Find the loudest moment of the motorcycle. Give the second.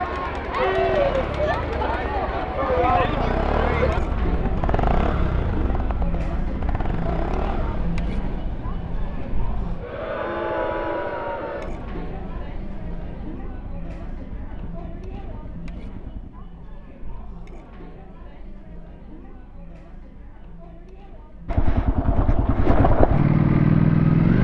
24 s.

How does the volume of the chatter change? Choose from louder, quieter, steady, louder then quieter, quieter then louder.
quieter.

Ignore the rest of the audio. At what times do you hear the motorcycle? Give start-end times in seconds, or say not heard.
0.0-16.3, 21.4-24.3.